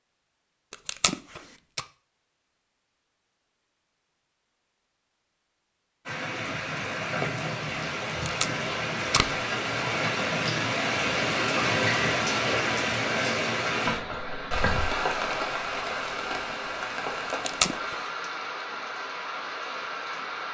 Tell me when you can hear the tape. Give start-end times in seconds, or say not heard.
0.7-1.9, 8.2-9.3, 17.3-18.0.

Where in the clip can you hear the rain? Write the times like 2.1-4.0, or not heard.
6.0-20.5.